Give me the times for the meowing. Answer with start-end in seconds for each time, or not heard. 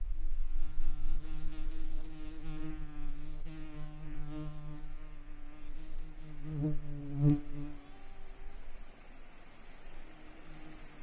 7.7-8.7.